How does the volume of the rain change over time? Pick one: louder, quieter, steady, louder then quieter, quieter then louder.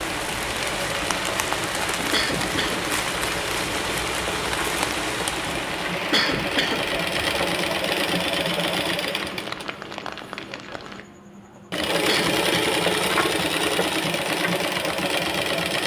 quieter.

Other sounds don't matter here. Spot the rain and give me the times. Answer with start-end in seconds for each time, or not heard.
0.0-11.1.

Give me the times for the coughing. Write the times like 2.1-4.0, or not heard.
2.1-2.8, 6.1-6.8, 12.1-12.8.